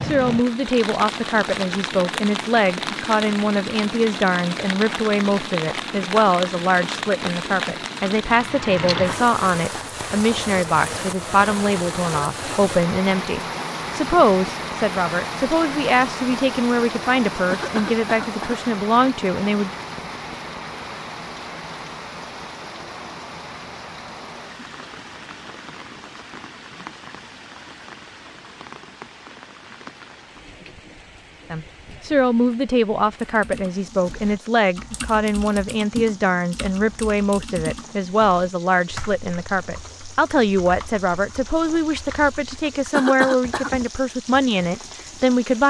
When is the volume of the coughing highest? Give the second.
43 s.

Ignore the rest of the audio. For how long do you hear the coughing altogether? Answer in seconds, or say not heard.
3 s.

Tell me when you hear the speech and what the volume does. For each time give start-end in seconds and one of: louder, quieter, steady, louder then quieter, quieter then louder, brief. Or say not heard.
0.0-19.7 steady
31.5-45.6 steady.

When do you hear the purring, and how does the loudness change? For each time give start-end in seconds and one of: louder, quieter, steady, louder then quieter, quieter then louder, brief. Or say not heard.
not heard.